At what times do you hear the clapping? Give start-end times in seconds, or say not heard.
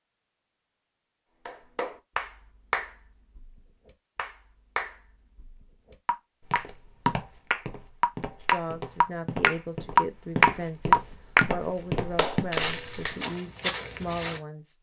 1.4-13.2.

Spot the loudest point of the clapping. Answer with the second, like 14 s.
11 s.